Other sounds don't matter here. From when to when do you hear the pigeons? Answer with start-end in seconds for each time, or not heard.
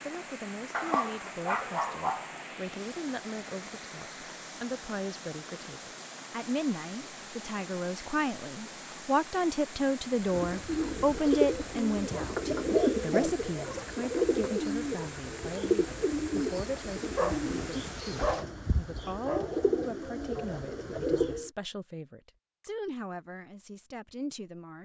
10.2-21.5.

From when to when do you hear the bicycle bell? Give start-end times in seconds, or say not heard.
not heard.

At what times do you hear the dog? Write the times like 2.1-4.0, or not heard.
0.7-2.2, 12.3-13.8, 17.1-19.9.